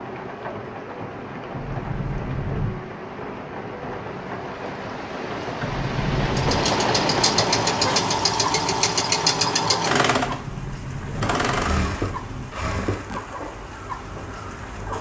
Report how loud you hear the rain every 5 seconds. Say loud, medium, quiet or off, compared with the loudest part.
medium, loud, medium.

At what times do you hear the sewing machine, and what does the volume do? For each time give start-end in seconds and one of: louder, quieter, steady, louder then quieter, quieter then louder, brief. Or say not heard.
6.2-14.9 quieter.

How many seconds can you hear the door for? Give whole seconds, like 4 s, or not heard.
5 s.